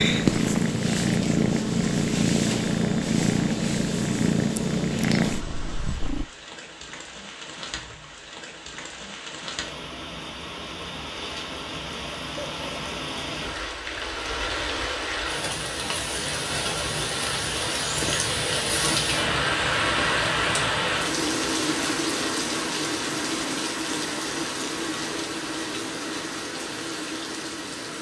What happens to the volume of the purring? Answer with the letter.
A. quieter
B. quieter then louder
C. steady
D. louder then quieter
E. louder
C.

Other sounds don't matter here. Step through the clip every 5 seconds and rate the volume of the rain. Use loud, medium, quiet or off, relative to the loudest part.
quiet, quiet, medium, loud, loud, medium.